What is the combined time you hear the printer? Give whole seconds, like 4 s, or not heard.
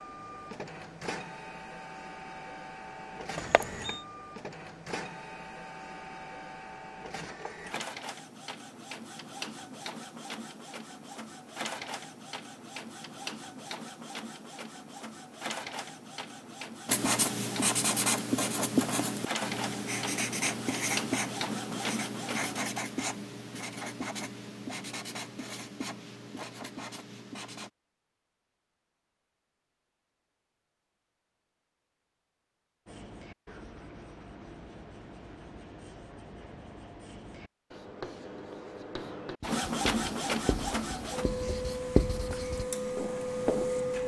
27 s.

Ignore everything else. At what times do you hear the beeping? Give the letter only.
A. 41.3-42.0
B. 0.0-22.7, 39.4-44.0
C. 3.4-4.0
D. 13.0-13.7
C.